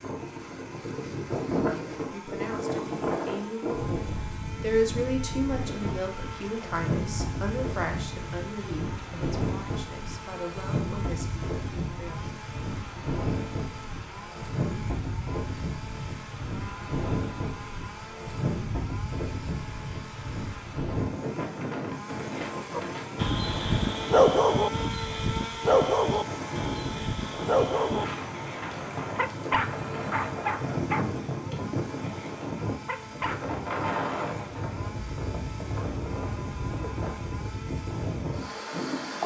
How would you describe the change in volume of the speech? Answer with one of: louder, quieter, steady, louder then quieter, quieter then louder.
louder then quieter.